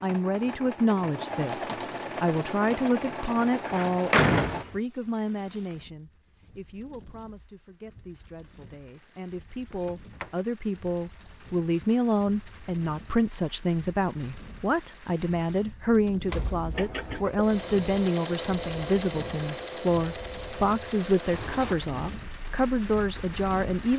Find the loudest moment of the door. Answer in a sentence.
The loudest moment of the door is at 4 seconds.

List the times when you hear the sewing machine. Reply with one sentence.
You can hear the sewing machine from 0.0 to 4.7 s and from 16.7 to 21.8 s.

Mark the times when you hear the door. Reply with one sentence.
You can hear the door from 3.6 to 4.7 s, from 9.7 to 10.3 s and from 16.2 to 17.1 s.